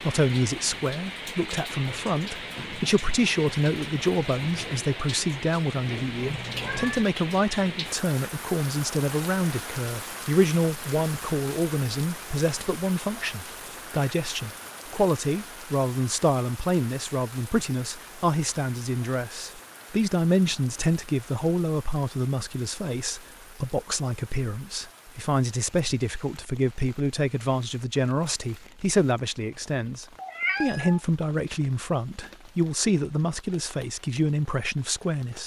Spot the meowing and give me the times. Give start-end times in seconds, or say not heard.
6.2-7.0, 30.1-31.0.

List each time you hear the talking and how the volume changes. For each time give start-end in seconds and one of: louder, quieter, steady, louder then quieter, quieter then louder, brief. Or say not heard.
0.0-35.4 steady.